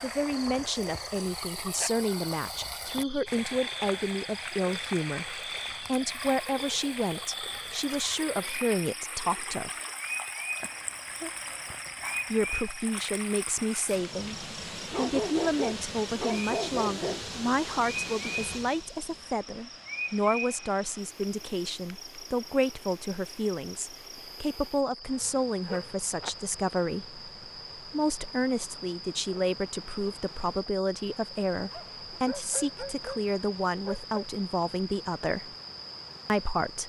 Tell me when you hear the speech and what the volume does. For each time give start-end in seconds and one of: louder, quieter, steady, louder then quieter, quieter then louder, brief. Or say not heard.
0.0-9.7 steady
12.3-35.5 steady
36.2-36.8 brief.